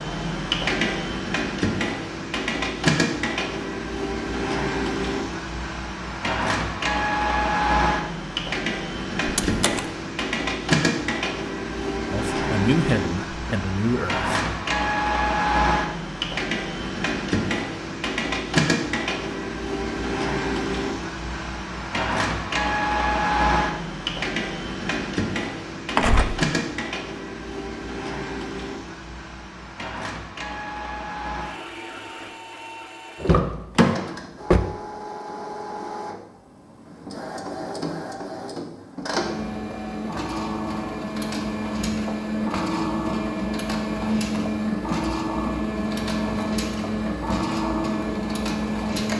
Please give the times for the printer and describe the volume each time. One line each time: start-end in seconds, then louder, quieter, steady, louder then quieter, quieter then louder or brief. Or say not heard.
0.0-49.1 quieter then louder.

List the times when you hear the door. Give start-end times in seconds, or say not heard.
9.2-9.8, 25.9-26.4, 33.2-34.7.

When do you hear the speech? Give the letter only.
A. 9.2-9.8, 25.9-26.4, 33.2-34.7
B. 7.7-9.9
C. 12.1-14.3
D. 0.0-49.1
C.